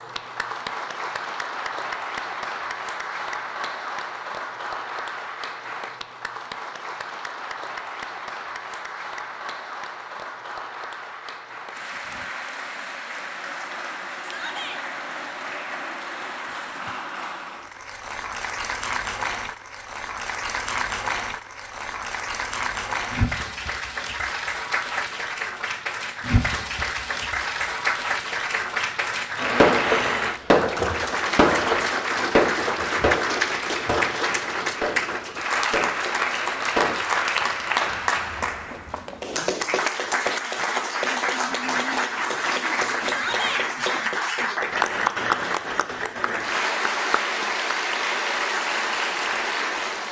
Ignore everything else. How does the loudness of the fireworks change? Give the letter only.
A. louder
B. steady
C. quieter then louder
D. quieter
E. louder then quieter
D.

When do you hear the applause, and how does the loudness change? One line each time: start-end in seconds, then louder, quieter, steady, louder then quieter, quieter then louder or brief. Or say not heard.
0.0-50.0 louder.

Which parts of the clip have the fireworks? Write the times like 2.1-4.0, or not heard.
29.4-37.0.